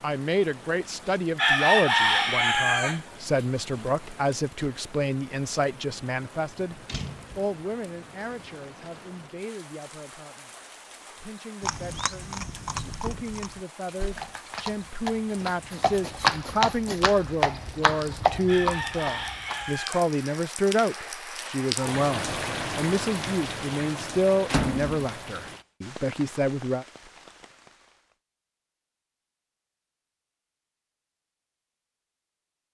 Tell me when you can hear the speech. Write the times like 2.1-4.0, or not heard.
0.0-26.9.